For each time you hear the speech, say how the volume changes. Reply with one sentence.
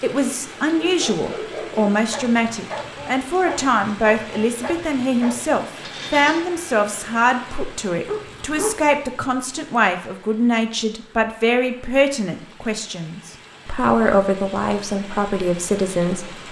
The speech can be heard from 0.0 to 16.4 s, at a steady volume.